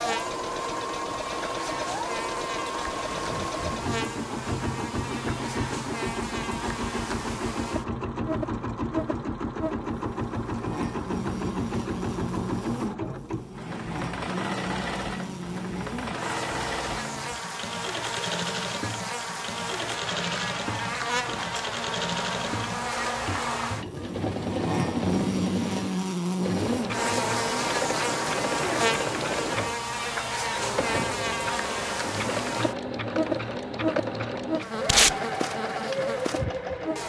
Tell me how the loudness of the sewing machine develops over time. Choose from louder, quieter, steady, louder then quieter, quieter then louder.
steady.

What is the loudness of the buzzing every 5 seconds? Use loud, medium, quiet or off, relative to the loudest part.
medium, medium, medium, medium, loud, loud, loud, medium.